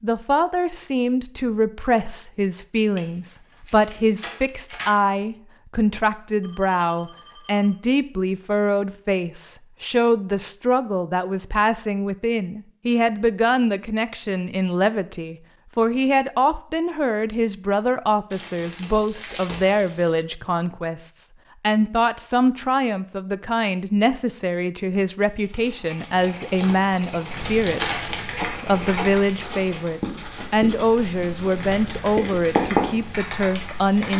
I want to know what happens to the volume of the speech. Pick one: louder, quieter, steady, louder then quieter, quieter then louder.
steady.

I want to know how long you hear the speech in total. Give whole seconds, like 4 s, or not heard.
34 s.